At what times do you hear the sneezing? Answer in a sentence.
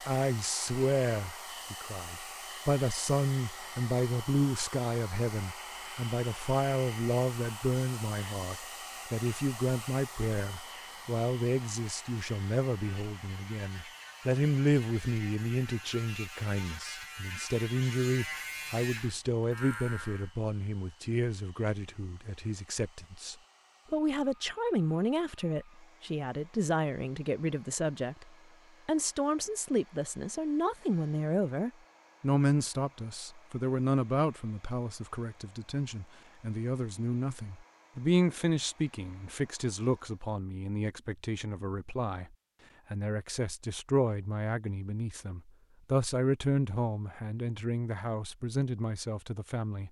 You can't hear the sneezing here.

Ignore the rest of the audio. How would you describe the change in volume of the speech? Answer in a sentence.
The volume of the speech stays about the same.